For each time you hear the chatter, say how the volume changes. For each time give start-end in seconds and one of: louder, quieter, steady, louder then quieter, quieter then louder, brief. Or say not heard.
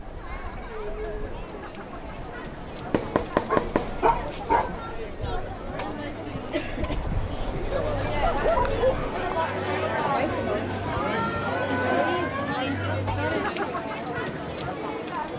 0.0-15.3 louder.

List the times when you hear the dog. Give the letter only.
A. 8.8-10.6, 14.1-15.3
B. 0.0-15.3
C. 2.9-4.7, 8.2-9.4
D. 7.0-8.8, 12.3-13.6
C.